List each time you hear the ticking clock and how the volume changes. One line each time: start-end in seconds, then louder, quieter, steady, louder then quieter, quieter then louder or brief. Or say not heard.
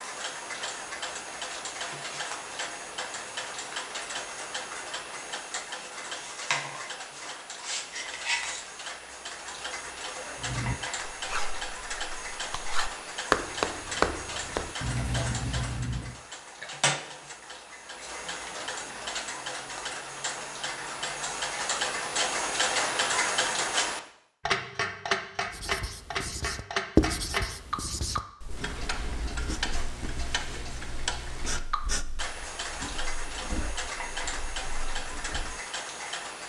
0.0-36.4 louder then quieter.